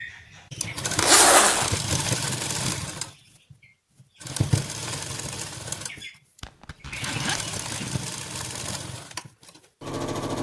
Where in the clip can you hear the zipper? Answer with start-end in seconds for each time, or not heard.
0.9-1.8, 6.4-8.0.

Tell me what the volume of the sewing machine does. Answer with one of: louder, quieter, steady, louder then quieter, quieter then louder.
quieter.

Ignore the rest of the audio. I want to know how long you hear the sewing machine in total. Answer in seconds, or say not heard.
10 s.